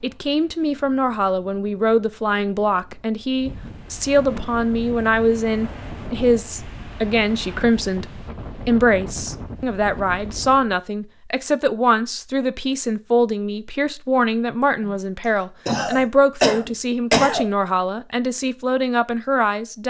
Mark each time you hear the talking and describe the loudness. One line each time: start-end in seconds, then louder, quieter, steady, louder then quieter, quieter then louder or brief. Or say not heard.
0.0-19.8 steady.